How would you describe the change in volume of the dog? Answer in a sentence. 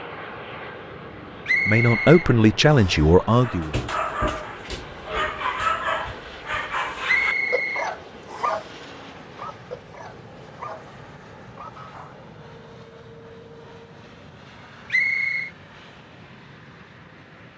The volume of the dog goes down.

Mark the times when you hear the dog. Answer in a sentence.
You can hear the dog from 3.4 to 12.2 s.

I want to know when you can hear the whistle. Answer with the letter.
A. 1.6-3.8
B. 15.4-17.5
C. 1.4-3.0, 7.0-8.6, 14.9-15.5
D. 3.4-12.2
C.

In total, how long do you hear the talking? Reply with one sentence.
The talking can be heard for 2 seconds in total.